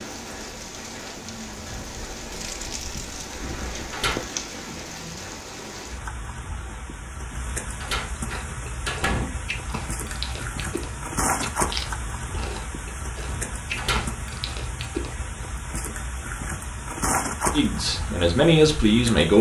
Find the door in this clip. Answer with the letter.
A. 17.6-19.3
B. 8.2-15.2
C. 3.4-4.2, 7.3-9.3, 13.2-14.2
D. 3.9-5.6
C.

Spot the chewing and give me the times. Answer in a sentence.
You can hear the chewing from 8.2 to 15.2 s.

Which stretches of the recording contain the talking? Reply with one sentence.
You can hear the talking from 17.6 to 19.3 s.